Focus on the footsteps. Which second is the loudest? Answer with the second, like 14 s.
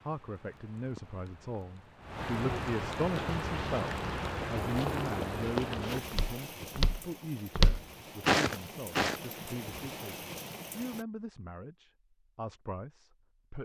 8 s.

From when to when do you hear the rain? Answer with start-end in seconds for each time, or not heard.
0.0-11.1.